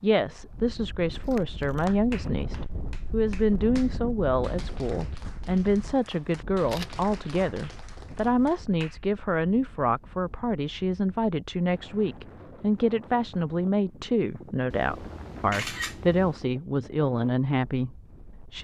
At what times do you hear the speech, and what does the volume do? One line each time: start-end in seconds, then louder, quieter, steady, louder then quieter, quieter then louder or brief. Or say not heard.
0.0-18.5 steady.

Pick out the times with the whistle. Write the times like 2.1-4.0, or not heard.
not heard.